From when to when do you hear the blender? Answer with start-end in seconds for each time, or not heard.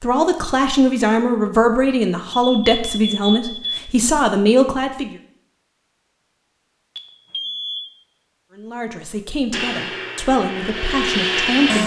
9.5-11.8.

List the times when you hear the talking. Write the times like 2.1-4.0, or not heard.
0.0-5.1, 8.6-11.8.